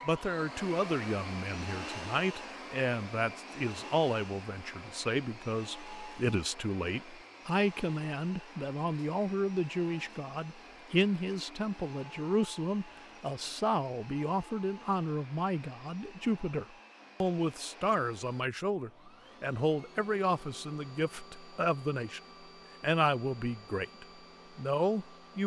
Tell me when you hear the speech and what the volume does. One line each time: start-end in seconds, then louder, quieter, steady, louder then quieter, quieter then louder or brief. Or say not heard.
0.1-22.2 steady
22.8-25.4 brief.